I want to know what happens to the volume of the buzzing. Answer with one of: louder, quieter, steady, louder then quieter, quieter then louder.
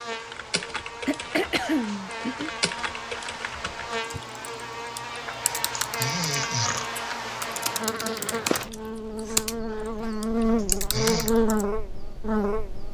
louder.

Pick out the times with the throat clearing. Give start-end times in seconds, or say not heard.
1.1-2.5, 5.8-6.8, 10.6-11.3.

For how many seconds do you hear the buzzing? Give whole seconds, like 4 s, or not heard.
13 s.